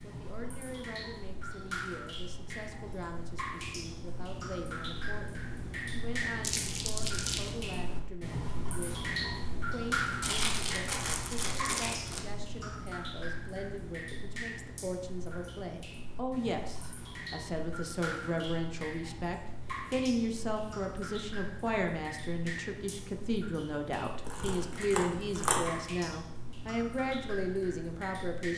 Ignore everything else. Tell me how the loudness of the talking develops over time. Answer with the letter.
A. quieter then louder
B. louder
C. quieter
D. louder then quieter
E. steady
B.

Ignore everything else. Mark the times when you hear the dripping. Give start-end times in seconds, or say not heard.
0.0-28.5.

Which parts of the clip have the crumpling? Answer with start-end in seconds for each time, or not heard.
6.4-7.5, 10.2-12.2, 24.2-25.8.